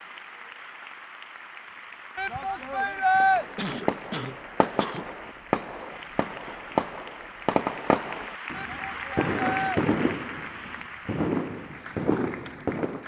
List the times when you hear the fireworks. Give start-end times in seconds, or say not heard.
3.2-13.0.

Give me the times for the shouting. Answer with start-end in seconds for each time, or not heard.
2.1-3.5, 8.5-9.8.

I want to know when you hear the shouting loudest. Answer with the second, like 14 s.
3 s.